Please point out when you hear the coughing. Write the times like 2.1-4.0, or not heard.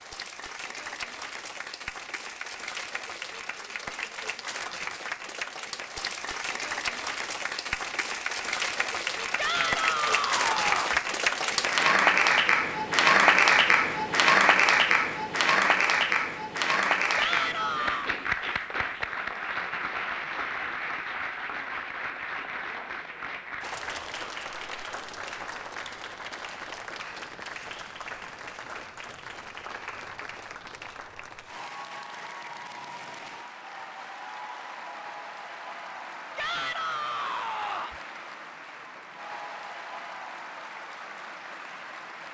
not heard.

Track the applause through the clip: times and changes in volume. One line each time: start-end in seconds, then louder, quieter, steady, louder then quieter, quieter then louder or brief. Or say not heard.
0.0-42.2 louder then quieter.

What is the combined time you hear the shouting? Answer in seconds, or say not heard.
4 s.